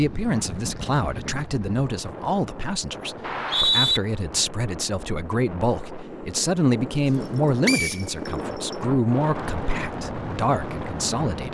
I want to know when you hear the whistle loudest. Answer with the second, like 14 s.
4 s.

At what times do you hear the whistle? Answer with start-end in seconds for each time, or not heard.
3.2-4.0, 7.7-8.8.